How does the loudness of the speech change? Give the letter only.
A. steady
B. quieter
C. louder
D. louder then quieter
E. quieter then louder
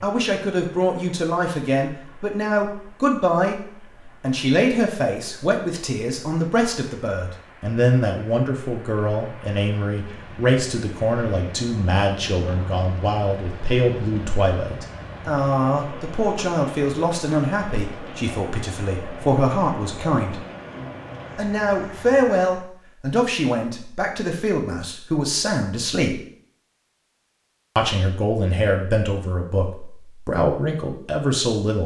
A.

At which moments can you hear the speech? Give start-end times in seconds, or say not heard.
0.0-20.4, 21.4-26.2, 27.8-31.8.